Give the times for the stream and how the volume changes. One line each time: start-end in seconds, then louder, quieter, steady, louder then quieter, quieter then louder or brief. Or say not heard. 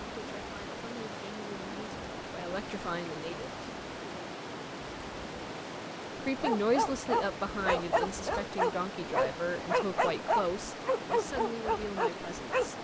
0.0-12.7 steady.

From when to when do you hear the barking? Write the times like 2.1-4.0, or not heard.
6.4-12.7.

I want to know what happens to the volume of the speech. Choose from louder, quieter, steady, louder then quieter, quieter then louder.
louder then quieter.